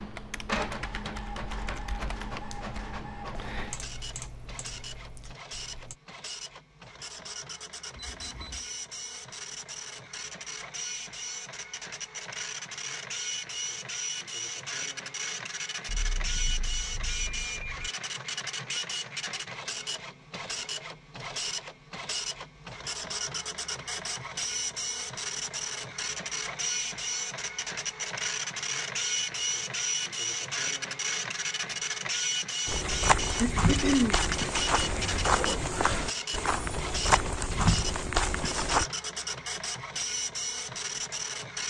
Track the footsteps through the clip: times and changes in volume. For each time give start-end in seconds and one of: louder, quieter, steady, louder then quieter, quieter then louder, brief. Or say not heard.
32.6-38.9 steady.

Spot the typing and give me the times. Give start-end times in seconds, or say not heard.
0.1-6.0.